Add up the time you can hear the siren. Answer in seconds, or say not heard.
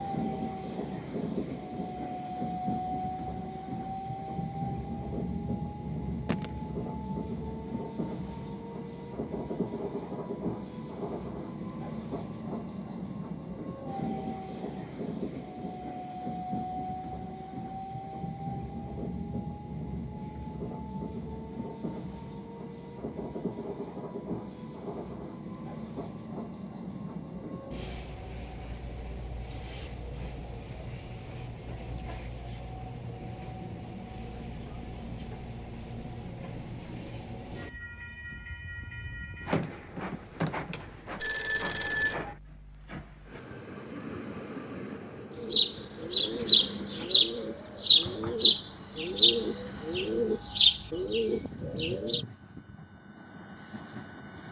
not heard.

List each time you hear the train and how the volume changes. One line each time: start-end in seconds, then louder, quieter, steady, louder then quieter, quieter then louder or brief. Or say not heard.
0.0-54.4 quieter.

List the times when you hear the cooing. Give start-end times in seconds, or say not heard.
45.4-52.2.